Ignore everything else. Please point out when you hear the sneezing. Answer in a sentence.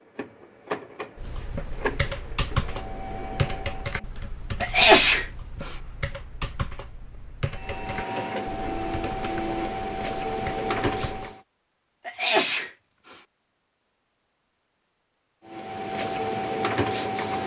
The sneezing can be heard from 4.6 to 5.7 s and from 12.1 to 13.2 s.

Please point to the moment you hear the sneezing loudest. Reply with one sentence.
The volume of the sneezing peaks at 5 seconds.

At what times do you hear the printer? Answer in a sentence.
You can hear the printer from 0.0 to 4.1 s, from 7.5 to 11.4 s and from 15.4 to 17.4 s.